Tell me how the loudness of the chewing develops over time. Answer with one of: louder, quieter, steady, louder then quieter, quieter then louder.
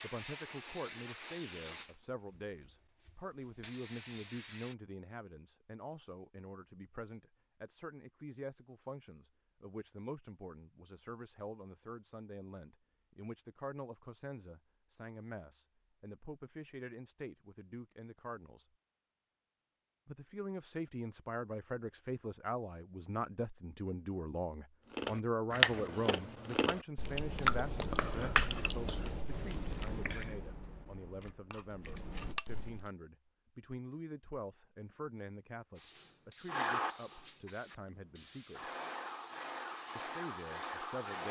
quieter.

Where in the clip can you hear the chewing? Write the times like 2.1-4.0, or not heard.
24.9-32.9.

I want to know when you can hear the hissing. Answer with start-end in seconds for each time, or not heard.
0.0-4.8, 35.8-41.2.